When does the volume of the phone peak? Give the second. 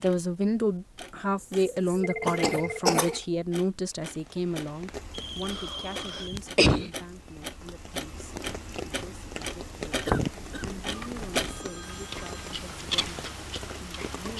2 s.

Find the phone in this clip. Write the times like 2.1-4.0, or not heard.
1.8-2.9, 5.1-6.4, 10.9-12.5.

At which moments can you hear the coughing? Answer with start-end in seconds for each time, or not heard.
1.4-3.2, 5.5-6.9, 10.1-10.7.